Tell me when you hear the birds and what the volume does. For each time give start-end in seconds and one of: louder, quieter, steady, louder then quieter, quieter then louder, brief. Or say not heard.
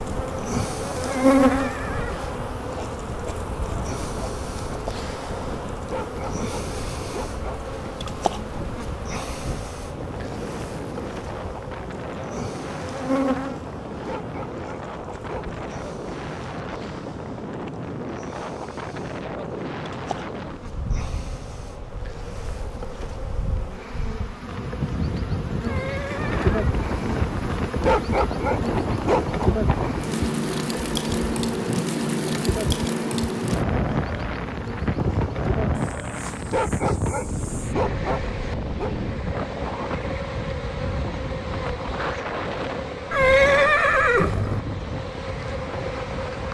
not heard.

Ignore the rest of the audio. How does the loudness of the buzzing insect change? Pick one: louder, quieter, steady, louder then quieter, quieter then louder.
quieter.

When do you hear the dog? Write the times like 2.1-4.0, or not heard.
5.8-7.6, 13.9-15.6, 27.7-29.2, 36.4-39.0.